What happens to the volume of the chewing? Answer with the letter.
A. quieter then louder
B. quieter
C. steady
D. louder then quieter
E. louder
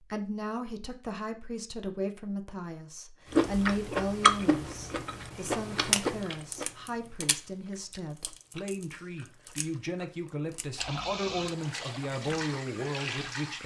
A.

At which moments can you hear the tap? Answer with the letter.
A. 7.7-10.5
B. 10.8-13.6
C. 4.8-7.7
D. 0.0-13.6
B.